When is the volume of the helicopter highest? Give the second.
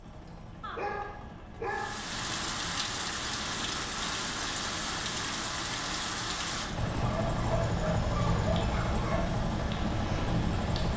8 s.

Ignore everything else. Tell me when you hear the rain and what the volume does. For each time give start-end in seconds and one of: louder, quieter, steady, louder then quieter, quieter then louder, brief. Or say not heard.
1.6-10.9 quieter.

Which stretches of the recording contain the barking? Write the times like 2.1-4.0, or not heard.
0.6-2.1, 7.0-9.3.